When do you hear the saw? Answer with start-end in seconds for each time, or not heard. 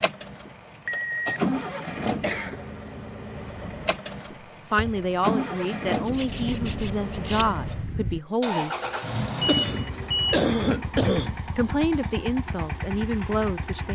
6.0-8.2.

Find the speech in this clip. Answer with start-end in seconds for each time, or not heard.
4.7-8.7, 10.8-13.9.